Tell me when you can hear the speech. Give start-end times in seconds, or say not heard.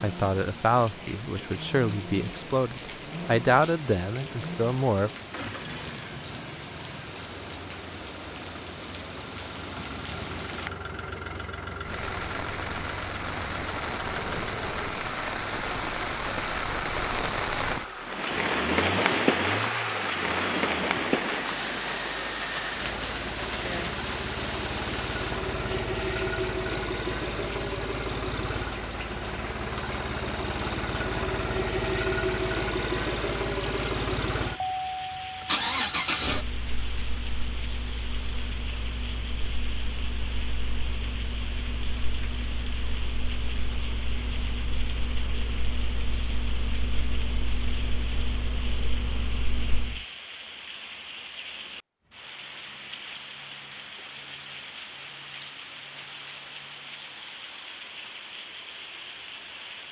0.0-5.1.